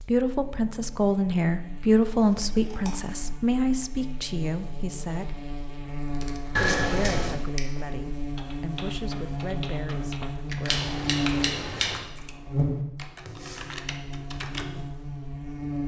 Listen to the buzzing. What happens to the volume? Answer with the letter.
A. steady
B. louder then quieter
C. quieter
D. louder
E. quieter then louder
D.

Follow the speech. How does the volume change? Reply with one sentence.
The loudness of the speech goes down.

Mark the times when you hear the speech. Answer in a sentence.
You can hear the speech from 0.0 to 5.4 s and from 6.6 to 10.9 s.